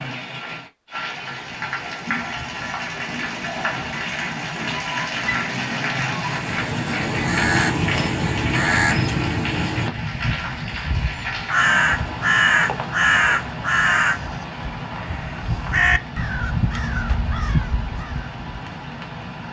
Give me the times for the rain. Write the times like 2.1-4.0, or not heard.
0.0-19.4.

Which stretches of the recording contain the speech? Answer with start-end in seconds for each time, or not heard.
not heard.